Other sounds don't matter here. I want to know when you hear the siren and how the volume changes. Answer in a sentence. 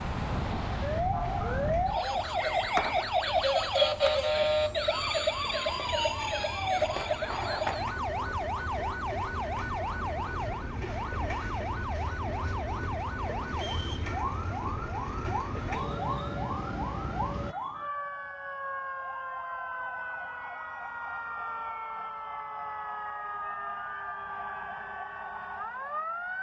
The siren can be heard from 0.0 to 26.3 s, getting quieter.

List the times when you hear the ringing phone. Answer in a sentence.
The ringing phone can't be heard in this clip.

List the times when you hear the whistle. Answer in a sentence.
You can hear the whistle from 2.4 to 3.0 s and from 13.5 to 14.1 s.